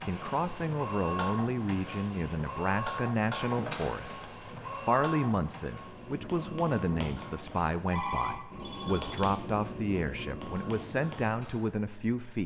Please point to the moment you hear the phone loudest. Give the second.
8 s.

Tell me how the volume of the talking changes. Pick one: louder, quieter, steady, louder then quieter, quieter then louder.
steady.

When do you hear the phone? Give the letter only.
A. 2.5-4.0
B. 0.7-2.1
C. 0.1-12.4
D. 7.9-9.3
D.